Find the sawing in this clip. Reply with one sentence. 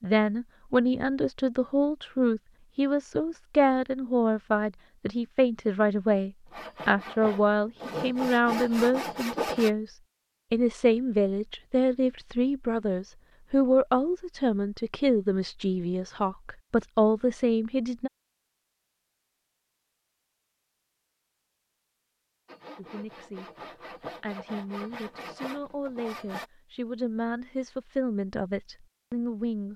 You can hear the sawing from 6.5 to 9.7 s and from 22.4 to 26.4 s.